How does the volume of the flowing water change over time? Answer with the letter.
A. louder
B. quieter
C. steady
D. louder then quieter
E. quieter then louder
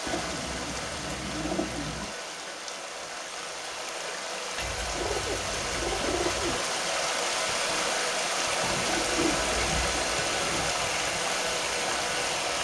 A.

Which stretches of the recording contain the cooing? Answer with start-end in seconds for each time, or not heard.
0.1-2.1, 4.5-6.6, 8.6-10.8.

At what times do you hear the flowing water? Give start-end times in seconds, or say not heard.
0.0-12.5.